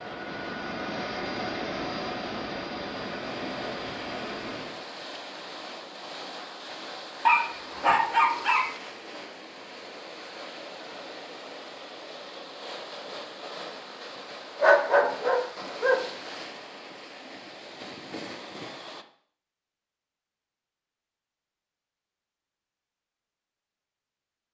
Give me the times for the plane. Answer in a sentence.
You can hear the plane from 0.0 to 4.8 s.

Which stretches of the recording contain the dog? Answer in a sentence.
The dog can be heard from 7.2 to 8.7 s and from 14.6 to 16.0 s.